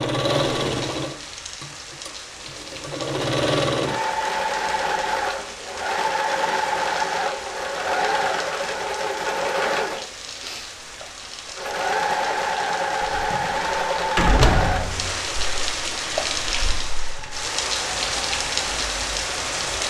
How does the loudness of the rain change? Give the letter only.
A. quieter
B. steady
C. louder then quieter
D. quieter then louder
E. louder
E.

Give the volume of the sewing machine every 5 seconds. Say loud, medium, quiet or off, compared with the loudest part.
loud, loud, loud, medium.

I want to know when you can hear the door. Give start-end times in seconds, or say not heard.
13.2-15.2.